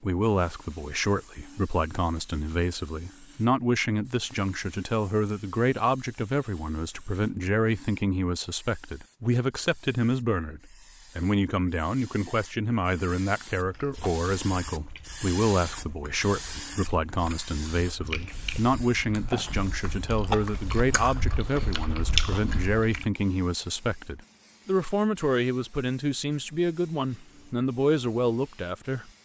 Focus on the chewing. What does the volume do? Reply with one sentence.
The volume of the chewing goes up.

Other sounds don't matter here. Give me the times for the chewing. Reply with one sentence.
You can hear the chewing from 13.6 to 23.1 s.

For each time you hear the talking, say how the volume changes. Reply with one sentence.
You can hear the talking from 0.0 to 29.1 s, at a steady volume.